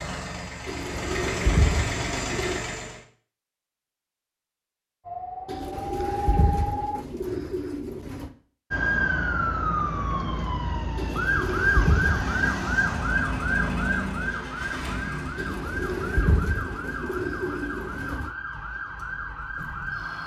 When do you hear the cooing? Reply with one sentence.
You can hear the cooing from 0.7 to 2.6 s, from 5.5 to 8.3 s, from 10.9 to 12.4 s and from 15.3 to 18.3 s.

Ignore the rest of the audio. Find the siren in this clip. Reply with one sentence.
You can hear the siren from 5.0 to 7.0 s and from 8.7 to 20.2 s.